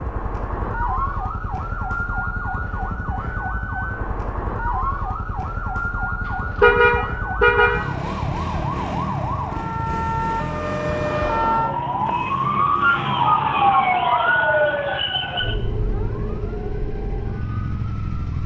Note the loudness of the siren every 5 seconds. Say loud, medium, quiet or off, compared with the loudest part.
medium, medium, loud, medium.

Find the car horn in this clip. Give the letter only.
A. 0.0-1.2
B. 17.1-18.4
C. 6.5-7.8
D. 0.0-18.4
C.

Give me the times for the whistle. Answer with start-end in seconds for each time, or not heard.
not heard.